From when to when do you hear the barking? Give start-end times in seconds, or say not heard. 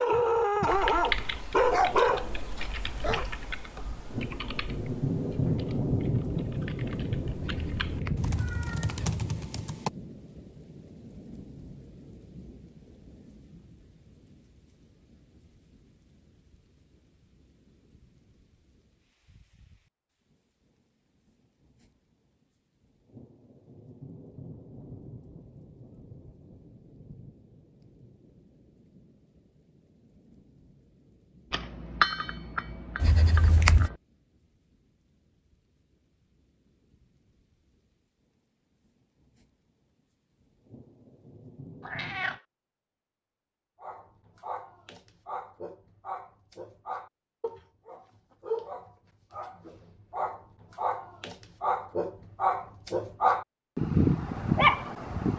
0.0-3.2, 43.8-55.3.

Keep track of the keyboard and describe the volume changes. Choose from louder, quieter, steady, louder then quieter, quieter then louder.
quieter then louder.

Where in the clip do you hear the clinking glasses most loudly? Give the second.
32 s.